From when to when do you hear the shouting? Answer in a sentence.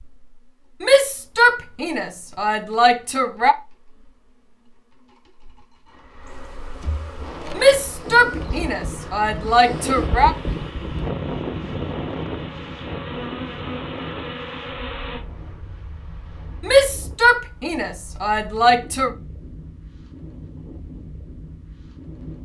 You can hear the shouting from 0.8 to 3.5 s, from 7.5 to 10.3 s and from 16.6 to 19.1 s.